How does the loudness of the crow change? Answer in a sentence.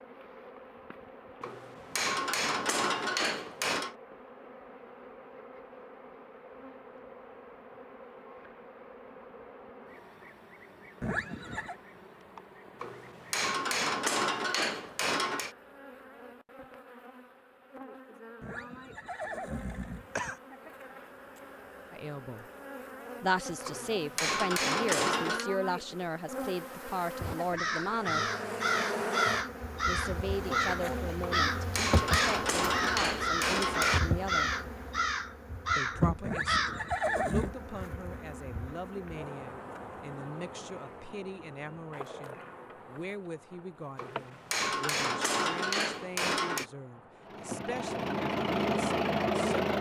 The loudness of the crow stays about the same.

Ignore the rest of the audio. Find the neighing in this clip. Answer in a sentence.
The neighing can be heard from 11.0 to 11.8 s, from 18.4 to 20.4 s and from 36.2 to 37.5 s.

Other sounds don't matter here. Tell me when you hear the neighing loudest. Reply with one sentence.
The loudest moment of the neighing is at 37 seconds.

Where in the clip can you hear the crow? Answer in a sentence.
You can hear the crow from 27.2 to 36.9 s.